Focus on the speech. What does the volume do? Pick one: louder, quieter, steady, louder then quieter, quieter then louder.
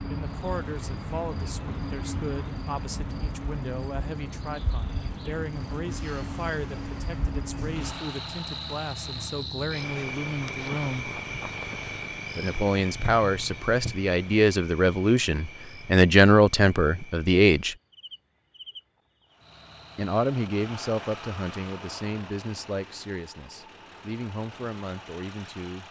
louder then quieter.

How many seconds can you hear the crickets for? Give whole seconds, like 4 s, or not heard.
20 s.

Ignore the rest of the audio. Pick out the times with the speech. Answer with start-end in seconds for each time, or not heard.
0.1-11.1, 12.3-17.8, 19.9-25.8.